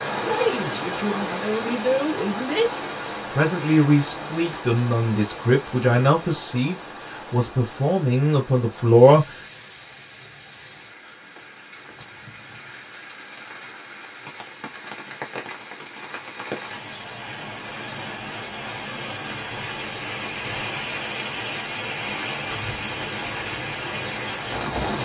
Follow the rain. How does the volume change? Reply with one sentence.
The volume of the rain goes down, then up.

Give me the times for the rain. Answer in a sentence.
You can hear the rain from 0.0 to 25.0 s.